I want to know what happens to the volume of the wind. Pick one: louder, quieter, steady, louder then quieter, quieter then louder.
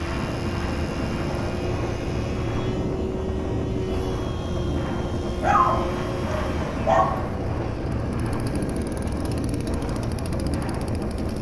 steady.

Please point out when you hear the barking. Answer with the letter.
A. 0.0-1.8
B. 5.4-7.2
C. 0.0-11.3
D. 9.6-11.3
B.